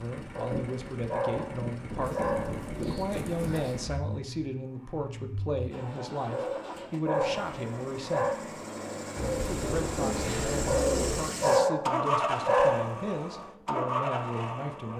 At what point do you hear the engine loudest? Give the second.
12 s.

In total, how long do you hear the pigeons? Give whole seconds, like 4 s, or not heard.
4 s.